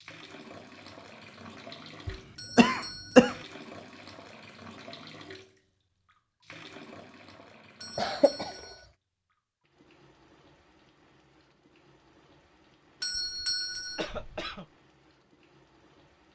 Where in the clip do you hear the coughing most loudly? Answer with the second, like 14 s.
3 s.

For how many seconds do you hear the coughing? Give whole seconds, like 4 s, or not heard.
3 s.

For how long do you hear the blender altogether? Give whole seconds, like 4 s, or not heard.
not heard.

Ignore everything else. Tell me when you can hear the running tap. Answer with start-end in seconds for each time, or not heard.
0.0-16.3.